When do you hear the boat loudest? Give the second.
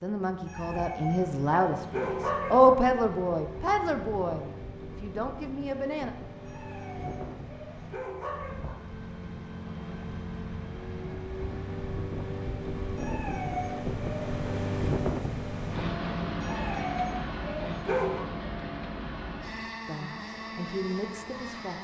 15 s.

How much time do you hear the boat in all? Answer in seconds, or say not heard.
22 s.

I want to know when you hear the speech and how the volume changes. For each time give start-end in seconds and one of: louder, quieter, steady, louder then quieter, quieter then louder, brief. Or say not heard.
0.0-6.1 louder then quieter
19.9-21.7 brief.